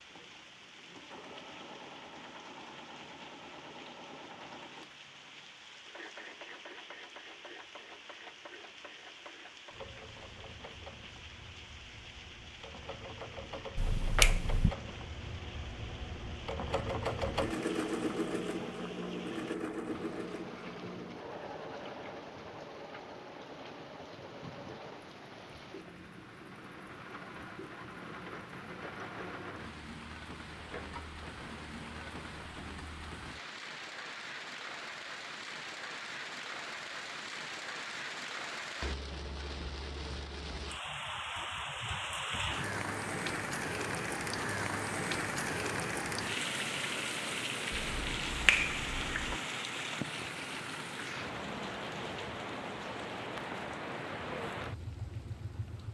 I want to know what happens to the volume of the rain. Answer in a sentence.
The volume of the rain goes up.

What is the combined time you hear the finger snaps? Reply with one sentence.
You can hear the finger snaps for 3 seconds altogether.